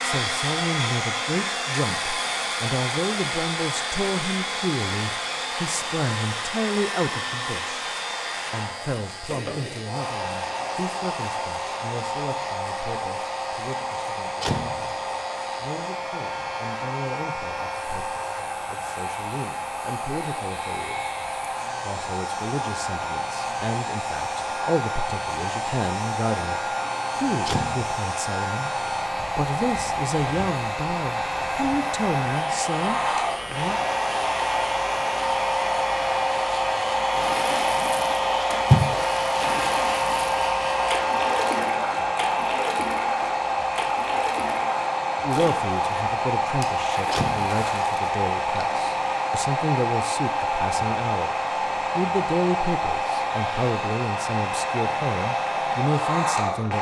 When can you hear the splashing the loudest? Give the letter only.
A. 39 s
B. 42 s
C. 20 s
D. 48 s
A.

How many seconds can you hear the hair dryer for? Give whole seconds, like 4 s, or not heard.
57 s.